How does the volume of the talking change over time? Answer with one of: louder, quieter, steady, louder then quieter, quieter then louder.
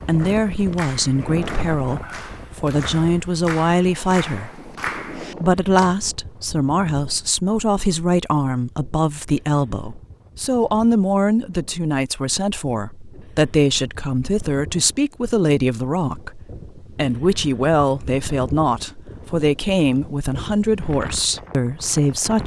steady.